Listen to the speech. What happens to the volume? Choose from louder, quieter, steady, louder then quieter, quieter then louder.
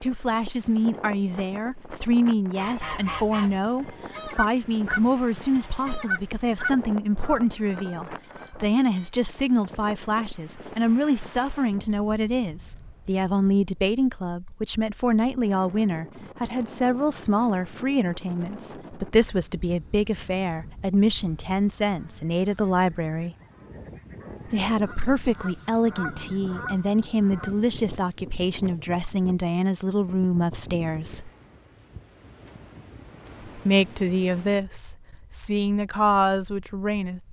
steady.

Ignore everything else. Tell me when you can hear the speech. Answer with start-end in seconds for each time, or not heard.
0.0-23.4, 24.4-31.3, 33.5-37.2.